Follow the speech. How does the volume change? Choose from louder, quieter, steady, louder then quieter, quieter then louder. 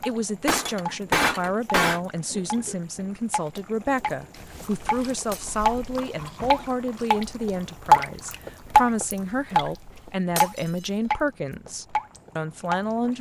steady.